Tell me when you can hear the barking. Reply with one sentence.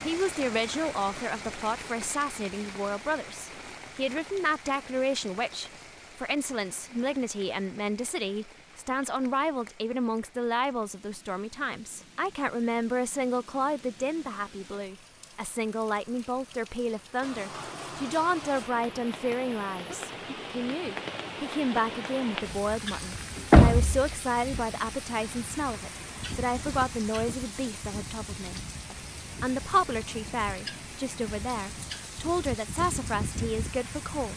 The barking can't be heard in this clip.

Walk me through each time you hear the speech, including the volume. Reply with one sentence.
The speech can be heard from 0.0 to 34.3 s, at a steady volume.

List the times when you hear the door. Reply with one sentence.
You can hear the door from 22.9 to 24.1 s.